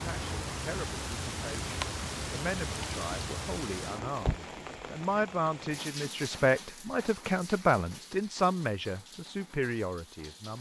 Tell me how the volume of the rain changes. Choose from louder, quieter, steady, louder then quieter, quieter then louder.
quieter.